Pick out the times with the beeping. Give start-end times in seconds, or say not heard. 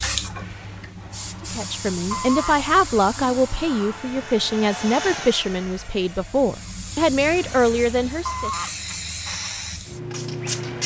2.1-2.6, 8.2-8.8.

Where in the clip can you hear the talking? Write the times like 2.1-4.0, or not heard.
1.4-8.5.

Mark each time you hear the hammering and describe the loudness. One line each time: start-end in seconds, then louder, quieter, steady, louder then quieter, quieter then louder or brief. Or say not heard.
not heard.